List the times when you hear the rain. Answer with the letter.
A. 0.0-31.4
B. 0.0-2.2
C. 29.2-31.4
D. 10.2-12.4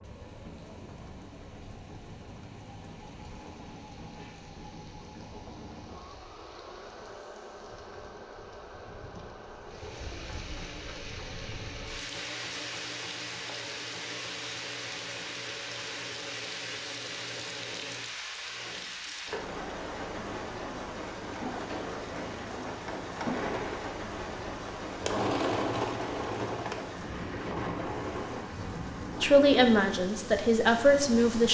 A.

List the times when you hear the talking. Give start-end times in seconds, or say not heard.
29.2-31.4.